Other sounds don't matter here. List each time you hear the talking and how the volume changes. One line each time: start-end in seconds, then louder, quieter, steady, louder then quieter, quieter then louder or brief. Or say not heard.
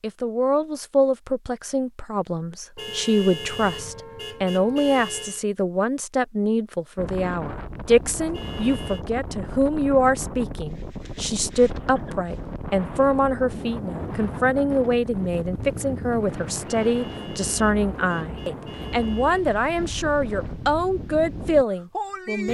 0.0-22.4 steady.